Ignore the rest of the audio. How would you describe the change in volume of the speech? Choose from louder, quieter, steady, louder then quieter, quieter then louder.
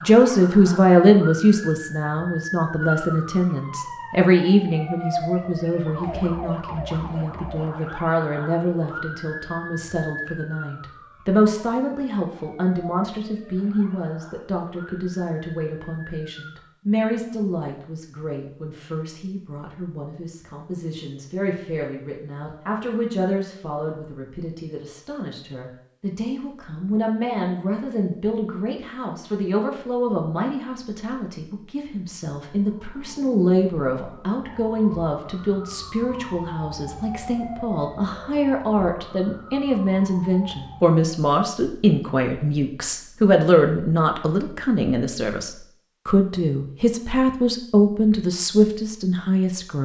quieter then louder.